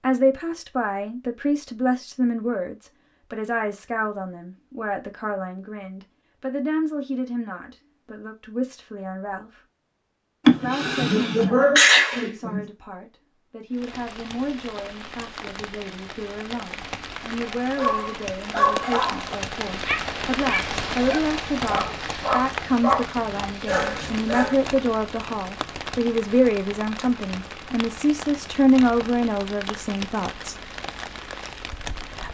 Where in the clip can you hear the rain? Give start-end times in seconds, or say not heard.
13.7-32.3.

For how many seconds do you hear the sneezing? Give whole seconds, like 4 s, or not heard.
2 s.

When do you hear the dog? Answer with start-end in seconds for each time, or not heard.
17.6-24.8.